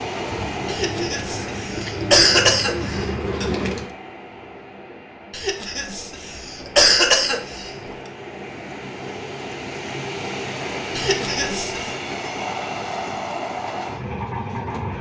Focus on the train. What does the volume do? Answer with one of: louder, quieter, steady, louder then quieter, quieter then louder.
quieter then louder.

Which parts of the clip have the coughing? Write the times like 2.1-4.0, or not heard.
0.7-3.5, 5.3-7.7, 10.9-11.9.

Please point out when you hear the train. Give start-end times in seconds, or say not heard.
0.0-14.9.